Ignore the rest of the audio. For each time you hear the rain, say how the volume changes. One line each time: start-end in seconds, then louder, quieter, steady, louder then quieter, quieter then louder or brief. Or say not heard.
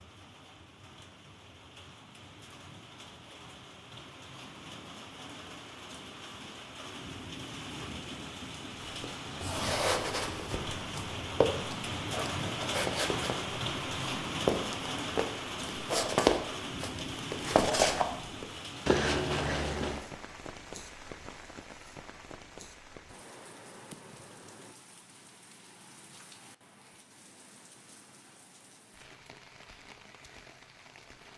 0.0-31.3 louder then quieter.